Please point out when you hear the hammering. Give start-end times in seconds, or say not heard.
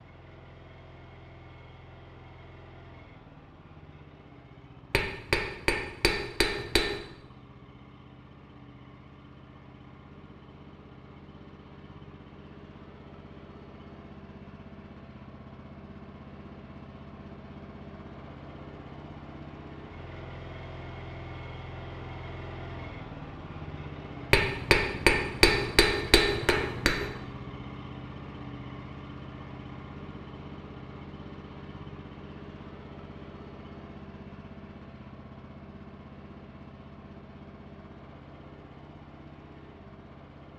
4.9-7.0, 24.3-27.1.